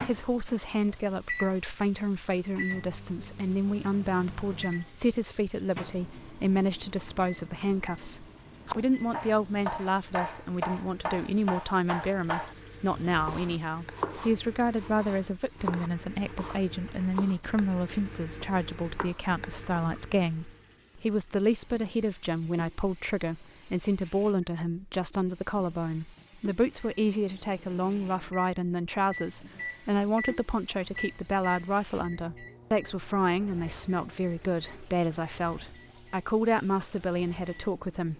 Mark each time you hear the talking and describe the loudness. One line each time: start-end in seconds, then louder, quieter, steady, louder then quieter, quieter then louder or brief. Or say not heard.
0.0-38.1 steady.